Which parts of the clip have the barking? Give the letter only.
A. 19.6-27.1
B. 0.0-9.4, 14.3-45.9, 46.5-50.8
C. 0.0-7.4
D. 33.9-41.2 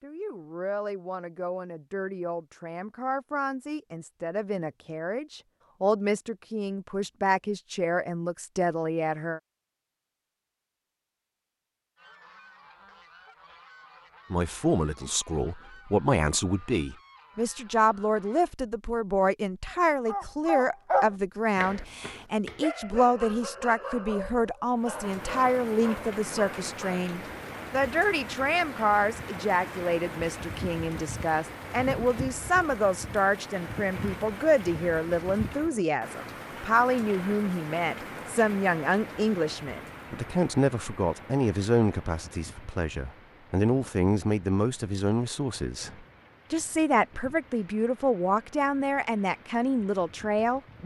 A.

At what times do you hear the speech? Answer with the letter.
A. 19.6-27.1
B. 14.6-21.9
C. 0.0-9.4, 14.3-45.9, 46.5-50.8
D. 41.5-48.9
C.